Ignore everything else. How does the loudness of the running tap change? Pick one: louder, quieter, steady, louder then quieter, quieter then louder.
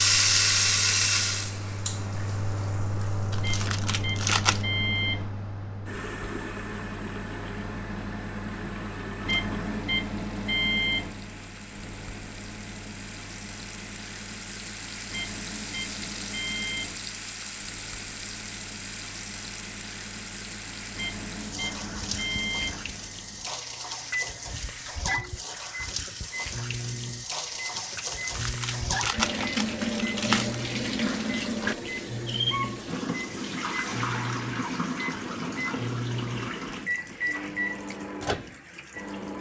quieter then louder.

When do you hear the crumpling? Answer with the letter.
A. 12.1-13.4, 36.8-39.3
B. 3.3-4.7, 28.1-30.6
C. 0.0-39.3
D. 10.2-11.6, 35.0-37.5
B.